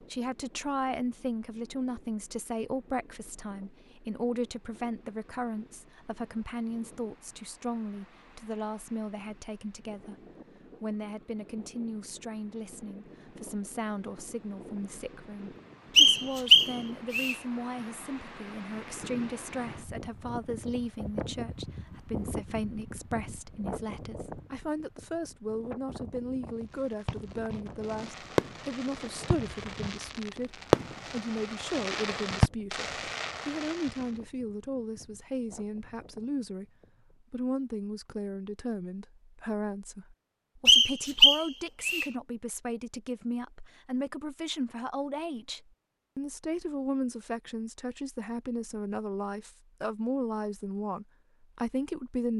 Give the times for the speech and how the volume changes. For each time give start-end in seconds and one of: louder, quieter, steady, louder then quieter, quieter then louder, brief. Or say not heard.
0.0-52.3 steady.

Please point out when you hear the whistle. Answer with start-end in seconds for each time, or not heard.
15.9-17.4, 40.6-42.0.